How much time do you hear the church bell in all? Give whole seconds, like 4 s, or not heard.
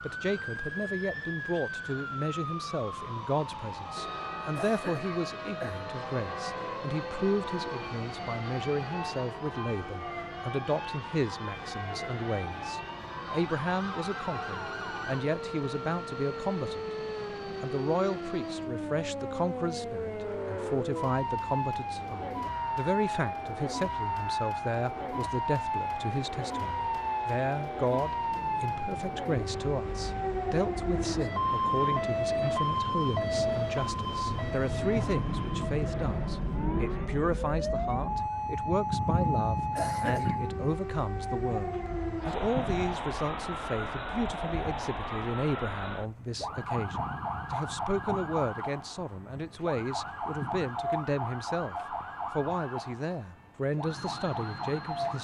11 s.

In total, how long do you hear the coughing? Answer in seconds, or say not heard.
2 s.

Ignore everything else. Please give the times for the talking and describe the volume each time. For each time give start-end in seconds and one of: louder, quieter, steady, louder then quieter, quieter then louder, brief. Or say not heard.
0.0-16.9 steady
17.6-55.1 steady.